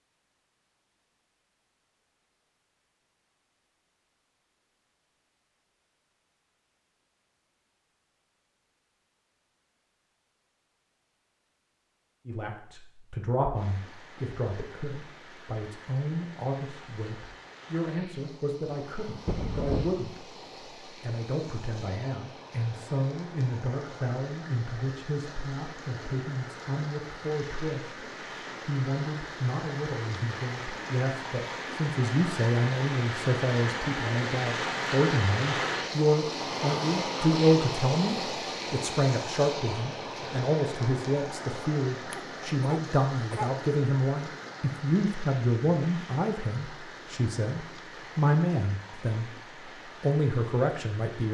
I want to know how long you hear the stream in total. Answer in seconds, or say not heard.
38 s.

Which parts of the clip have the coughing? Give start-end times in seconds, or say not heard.
19.2-19.9, 42.1-43.5.